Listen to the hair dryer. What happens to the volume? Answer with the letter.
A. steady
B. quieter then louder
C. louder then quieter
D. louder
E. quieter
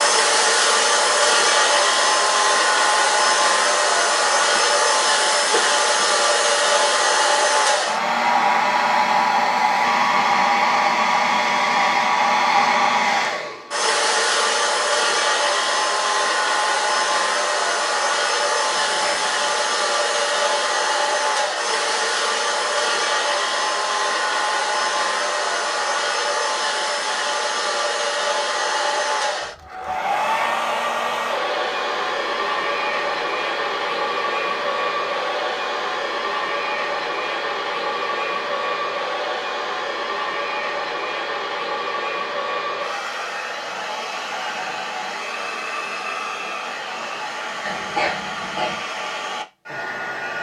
E.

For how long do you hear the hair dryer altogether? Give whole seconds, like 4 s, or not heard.
50 s.